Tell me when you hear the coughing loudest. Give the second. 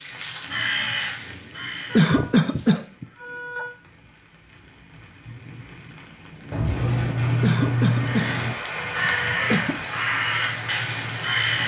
2 s.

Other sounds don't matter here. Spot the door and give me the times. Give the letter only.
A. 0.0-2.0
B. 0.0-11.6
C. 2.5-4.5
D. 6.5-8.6
D.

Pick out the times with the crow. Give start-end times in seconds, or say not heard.
0.0-3.0, 8.0-11.6.